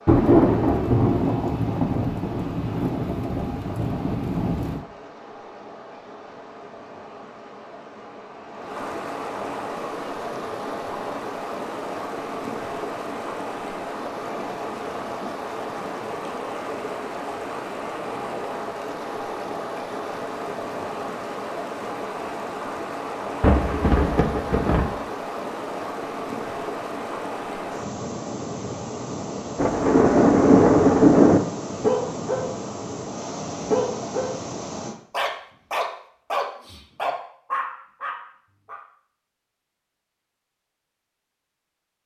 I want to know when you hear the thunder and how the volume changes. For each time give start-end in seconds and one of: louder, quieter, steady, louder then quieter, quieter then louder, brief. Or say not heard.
0.1-4.8 quieter
23.4-24.9 brief
29.6-31.4 brief.